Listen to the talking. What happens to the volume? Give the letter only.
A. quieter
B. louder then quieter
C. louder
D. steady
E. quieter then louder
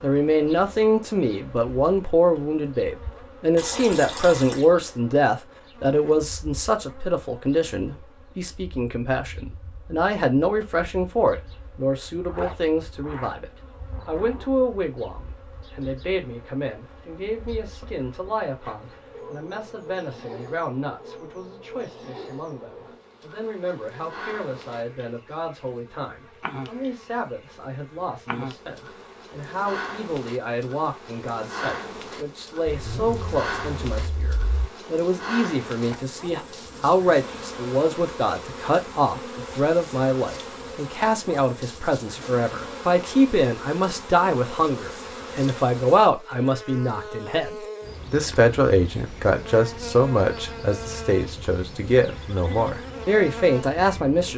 E.